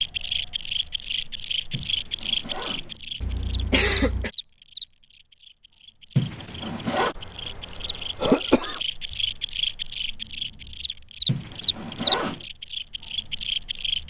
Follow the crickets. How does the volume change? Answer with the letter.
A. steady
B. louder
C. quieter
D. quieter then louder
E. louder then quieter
D.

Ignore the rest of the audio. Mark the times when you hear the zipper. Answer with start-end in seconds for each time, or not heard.
1.7-3.0, 6.2-7.2, 11.2-12.4.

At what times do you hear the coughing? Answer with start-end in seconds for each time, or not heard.
3.2-4.3, 7.2-8.8.